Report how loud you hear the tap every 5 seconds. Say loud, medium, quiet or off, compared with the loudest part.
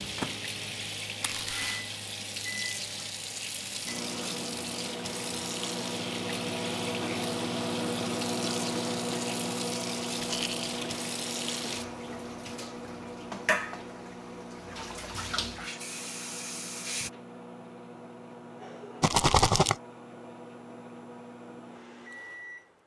loud, loud, loud, loud, off.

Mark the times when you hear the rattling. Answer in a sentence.
The rattling can be heard from 1.2 to 1.9 s, from 10.2 to 10.9 s and from 19.0 to 19.8 s.